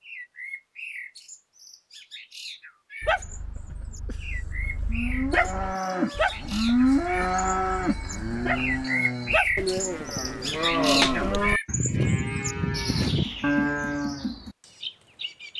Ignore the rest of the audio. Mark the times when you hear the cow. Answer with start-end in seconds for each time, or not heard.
4.8-14.3.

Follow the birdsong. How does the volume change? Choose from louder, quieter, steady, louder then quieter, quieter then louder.
louder then quieter.